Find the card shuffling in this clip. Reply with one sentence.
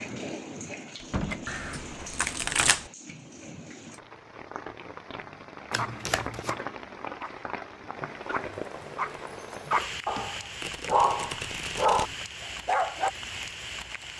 You can hear the card shuffling from 1.4 to 2.9 s, from 5.7 to 6.6 s and from 10.6 to 12.2 s.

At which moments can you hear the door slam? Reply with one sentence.
You can hear the door slam from 0.9 to 1.4 s.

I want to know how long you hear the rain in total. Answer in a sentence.
You can hear the rain for 14 seconds altogether.